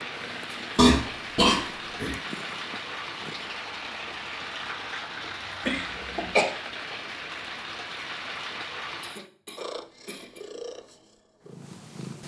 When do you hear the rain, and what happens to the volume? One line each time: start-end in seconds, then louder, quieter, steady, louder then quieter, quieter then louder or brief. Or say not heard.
0.0-9.3 steady.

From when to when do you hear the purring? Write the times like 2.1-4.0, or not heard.
0.0-3.6, 9.6-12.2.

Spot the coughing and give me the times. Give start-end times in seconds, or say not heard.
0.8-2.1, 5.7-6.5, 9.0-10.4.